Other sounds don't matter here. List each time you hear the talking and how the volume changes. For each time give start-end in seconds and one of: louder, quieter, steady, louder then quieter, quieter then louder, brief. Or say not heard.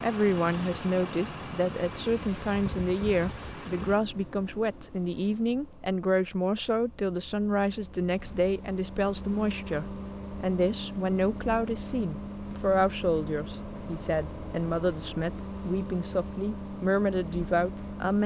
0.0-18.2 steady.